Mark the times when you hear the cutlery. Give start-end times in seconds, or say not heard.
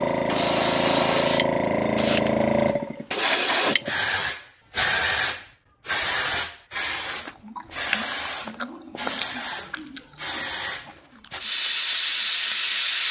not heard.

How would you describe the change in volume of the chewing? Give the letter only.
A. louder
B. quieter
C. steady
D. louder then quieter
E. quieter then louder
B.